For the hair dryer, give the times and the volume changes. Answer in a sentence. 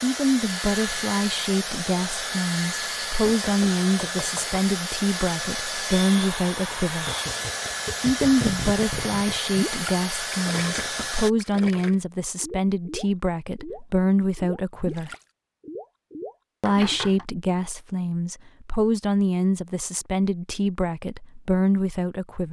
The hair dryer can be heard from 0.0 to 11.3 s, at a steady volume.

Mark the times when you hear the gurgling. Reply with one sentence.
You can hear the gurgling from 7.0 to 17.0 s.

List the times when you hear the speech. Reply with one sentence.
The speech can be heard from 0.0 to 7.1 s, from 8.0 to 15.2 s and from 16.6 to 22.4 s.